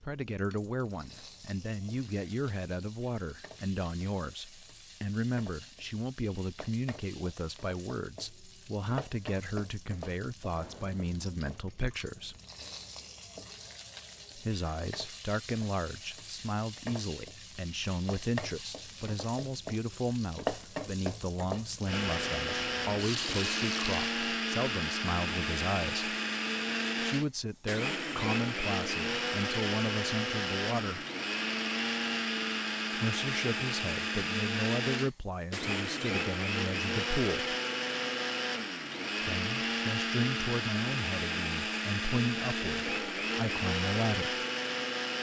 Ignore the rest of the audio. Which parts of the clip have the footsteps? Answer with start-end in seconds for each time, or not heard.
not heard.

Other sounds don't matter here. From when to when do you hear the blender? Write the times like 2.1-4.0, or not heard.
21.9-45.1.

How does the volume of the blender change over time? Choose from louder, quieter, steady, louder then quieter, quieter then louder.
steady.